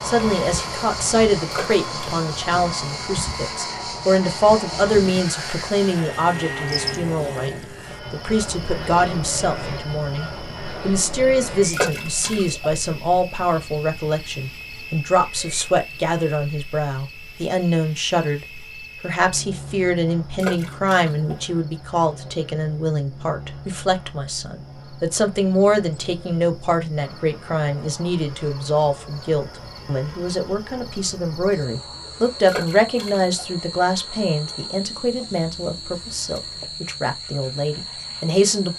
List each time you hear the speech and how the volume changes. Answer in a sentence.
The speech can be heard from 0.0 to 38.7 s, at a steady volume.